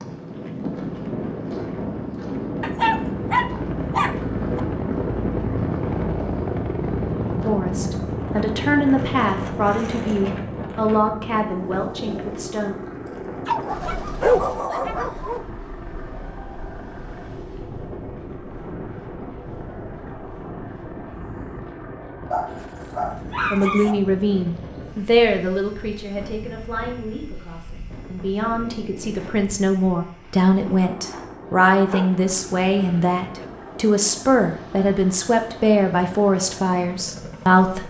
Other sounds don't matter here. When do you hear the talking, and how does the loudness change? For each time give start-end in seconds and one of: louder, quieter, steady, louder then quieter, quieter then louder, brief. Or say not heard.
7.3-12.8 louder then quieter
23.5-37.8 quieter then louder.